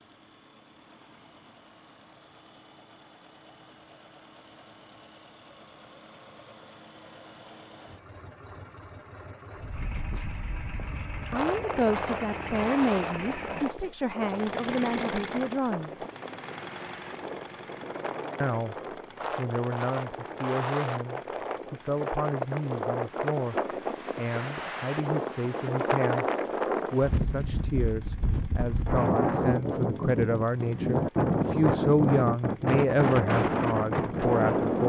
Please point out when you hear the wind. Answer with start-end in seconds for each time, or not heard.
9.6-34.8.